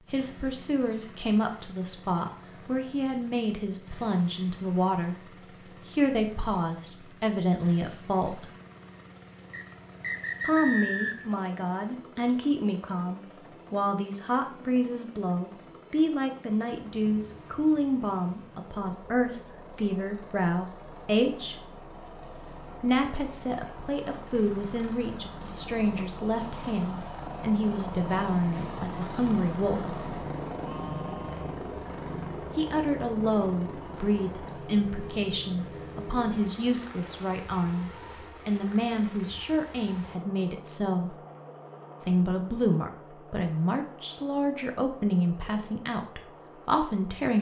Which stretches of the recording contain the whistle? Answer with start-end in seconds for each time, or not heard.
9.5-11.3.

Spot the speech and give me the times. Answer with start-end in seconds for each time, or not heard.
0.1-8.5, 10.4-21.6, 22.8-29.9, 32.5-41.2, 42.0-47.3.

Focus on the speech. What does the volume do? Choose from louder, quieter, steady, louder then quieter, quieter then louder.
steady.